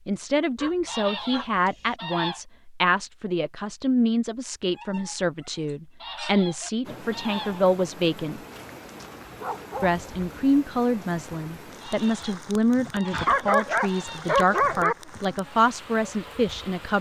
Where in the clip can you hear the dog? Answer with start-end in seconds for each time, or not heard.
0.6-2.0, 4.7-6.7, 8.5-10.0, 13.1-14.9.